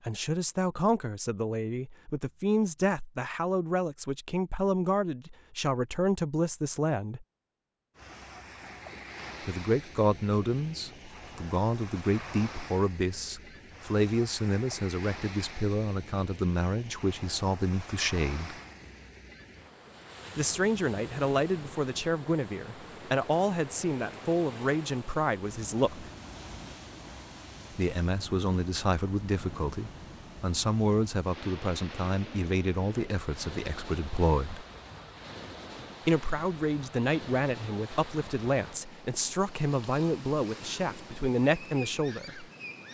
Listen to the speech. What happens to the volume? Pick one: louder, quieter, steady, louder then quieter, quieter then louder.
steady.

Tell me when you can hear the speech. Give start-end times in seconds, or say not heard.
0.1-7.2, 9.4-18.6, 20.4-26.1, 27.7-34.6, 36.0-42.5.